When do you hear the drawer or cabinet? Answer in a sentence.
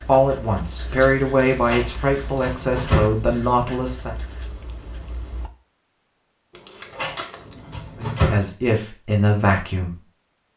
The drawer or cabinet can be heard from 1.6 to 3.1 s and from 7.0 to 8.4 s.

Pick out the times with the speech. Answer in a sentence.
The speech can be heard from 0.1 to 4.2 s and from 8.0 to 10.0 s.